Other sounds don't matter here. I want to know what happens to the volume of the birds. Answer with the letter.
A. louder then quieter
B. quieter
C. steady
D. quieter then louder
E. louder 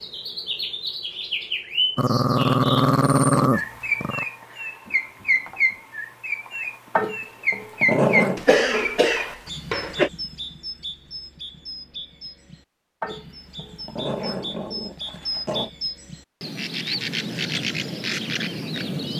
D.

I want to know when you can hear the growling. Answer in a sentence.
The growling can be heard from 1.9 to 4.2 s, from 7.0 to 8.4 s and from 13.0 to 15.7 s.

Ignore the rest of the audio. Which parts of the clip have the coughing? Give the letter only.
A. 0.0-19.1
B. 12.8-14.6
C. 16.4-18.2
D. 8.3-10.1
D.